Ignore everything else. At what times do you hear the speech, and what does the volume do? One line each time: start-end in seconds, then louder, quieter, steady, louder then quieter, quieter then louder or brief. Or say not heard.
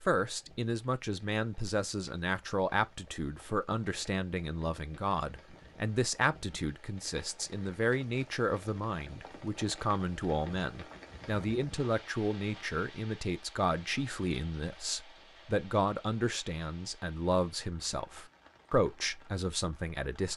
0.0-20.3 steady.